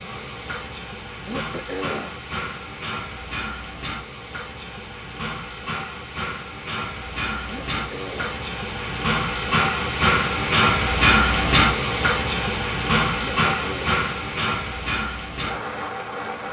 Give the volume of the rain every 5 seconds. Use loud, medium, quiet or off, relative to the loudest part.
quiet, medium, loud, medium.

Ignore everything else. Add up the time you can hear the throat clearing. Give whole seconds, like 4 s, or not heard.
3 s.